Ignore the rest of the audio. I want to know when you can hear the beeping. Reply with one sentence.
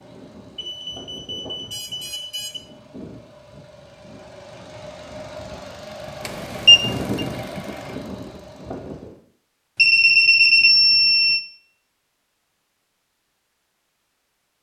You can hear the beeping from 0.6 to 2.6 s, from 6.2 to 7.2 s and from 9.8 to 11.4 s.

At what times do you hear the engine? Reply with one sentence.
You can hear the engine from 0.0 to 9.2 s.